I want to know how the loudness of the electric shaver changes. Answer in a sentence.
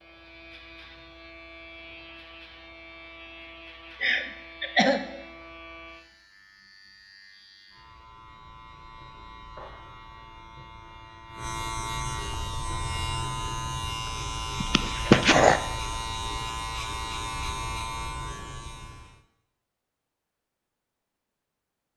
The volume of the electric shaver goes up.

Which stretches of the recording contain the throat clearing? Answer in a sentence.
You can hear the throat clearing from 4.0 to 5.0 s and from 14.6 to 15.6 s.